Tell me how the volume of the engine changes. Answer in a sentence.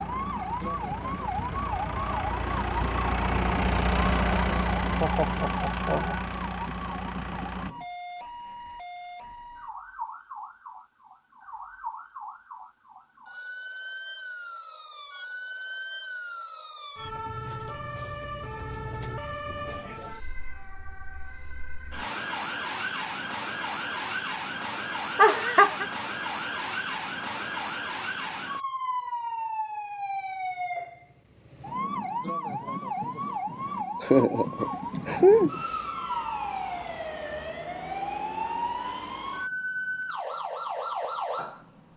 The volume of the engine goes up, then down.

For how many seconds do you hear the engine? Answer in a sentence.
The engine can be heard for 8 seconds in total.